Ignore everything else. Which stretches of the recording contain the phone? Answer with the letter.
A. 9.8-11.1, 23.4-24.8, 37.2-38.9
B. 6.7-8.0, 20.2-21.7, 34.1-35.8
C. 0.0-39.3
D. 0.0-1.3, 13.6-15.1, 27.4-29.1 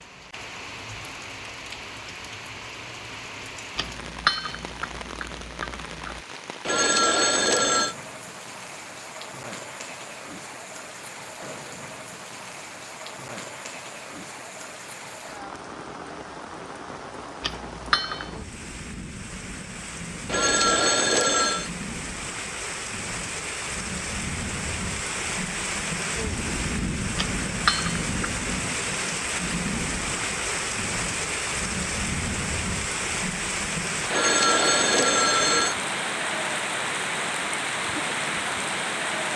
B.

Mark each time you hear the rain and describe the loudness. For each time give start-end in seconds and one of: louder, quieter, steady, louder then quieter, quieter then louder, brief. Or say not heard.
0.0-39.3 louder.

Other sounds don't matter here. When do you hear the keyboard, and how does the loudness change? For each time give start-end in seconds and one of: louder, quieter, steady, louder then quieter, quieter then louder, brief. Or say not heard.
not heard.